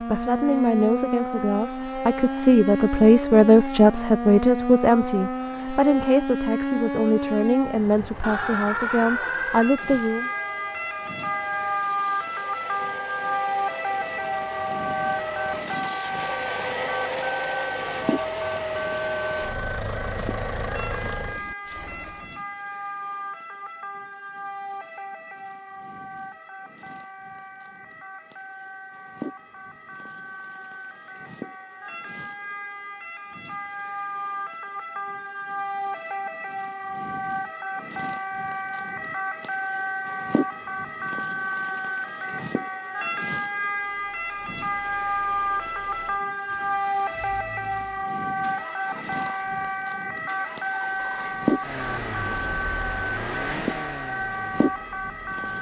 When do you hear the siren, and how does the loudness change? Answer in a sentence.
The siren can be heard from 0.0 to 55.5 s, getting quieter then louder.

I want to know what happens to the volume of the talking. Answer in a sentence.
The volume of the talking goes up, then down.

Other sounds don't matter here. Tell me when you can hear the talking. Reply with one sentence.
The talking can be heard from 0.0 to 10.3 s.